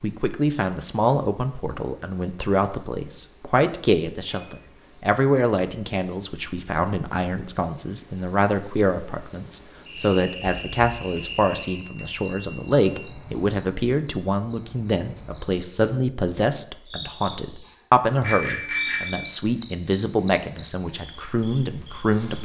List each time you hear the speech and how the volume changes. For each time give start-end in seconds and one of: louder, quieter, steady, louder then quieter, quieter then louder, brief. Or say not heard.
0.0-22.3 steady.